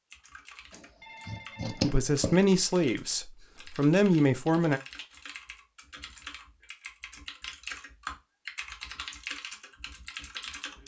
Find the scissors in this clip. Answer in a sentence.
You can hear the scissors from 0.7 to 2.4 s.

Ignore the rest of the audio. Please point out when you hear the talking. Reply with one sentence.
You can hear the talking from 1.7 to 4.8 s.